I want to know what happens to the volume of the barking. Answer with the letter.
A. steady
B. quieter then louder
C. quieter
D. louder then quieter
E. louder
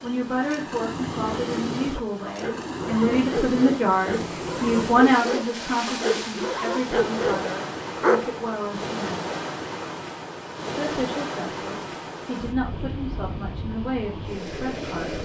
E.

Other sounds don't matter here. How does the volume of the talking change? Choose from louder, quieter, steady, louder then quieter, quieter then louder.
louder then quieter.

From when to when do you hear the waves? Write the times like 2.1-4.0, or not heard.
0.0-15.2.